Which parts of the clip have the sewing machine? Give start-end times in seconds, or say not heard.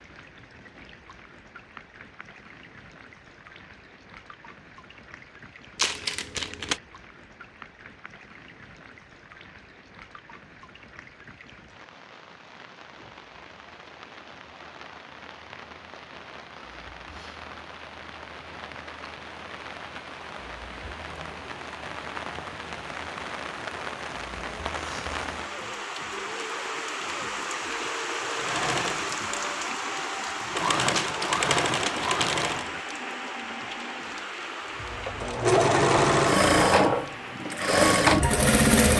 28.3-32.7, 34.8-38.9.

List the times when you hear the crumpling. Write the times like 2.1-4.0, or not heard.
5.8-6.8, 30.9-32.9.